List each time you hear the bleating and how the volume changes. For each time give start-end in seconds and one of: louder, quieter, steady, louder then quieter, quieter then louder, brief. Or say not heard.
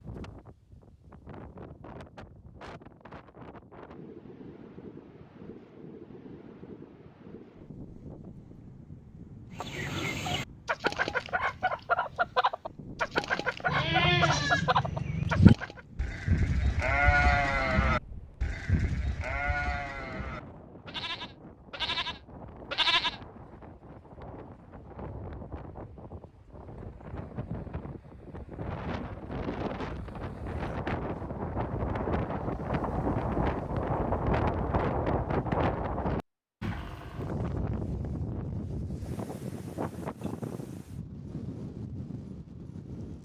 13.7-23.1 quieter.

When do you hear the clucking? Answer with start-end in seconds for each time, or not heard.
9.6-15.8.